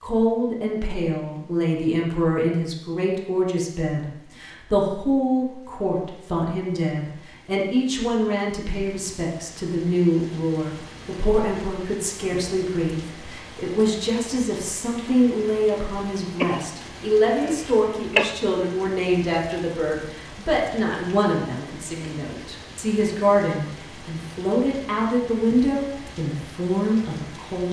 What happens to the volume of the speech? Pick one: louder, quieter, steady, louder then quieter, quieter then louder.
steady.